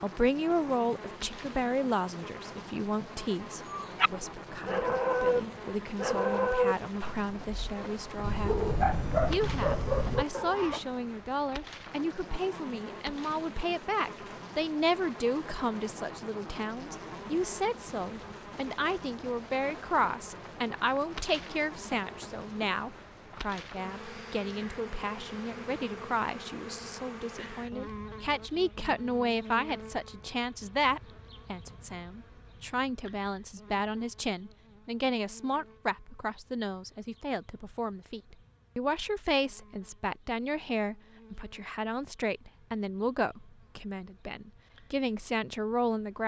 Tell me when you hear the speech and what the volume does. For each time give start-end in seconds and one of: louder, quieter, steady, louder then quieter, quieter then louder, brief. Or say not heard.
0.0-46.2 steady.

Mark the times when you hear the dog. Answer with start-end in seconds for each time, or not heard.
3.6-10.8.